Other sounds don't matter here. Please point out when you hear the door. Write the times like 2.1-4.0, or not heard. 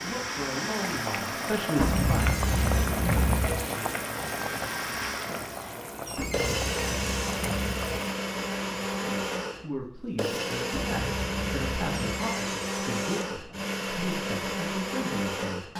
2.0-3.0, 6.0-7.4, 12.1-13.2.